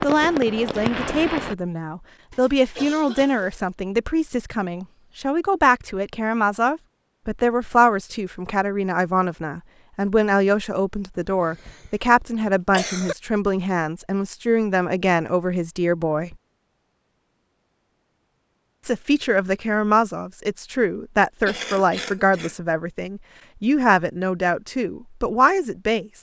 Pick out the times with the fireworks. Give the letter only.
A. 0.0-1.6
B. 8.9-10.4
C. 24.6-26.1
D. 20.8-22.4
A.